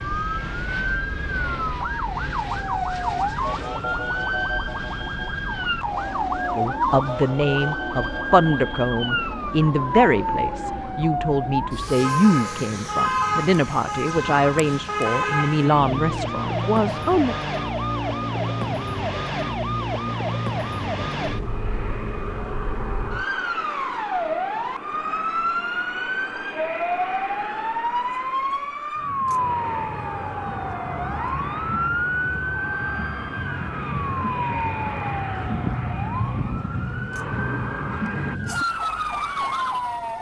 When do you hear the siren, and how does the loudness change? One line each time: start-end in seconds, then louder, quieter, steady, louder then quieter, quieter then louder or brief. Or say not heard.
0.0-40.1 steady.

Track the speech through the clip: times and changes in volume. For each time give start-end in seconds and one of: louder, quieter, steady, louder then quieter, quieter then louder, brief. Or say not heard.
6.5-17.4 steady.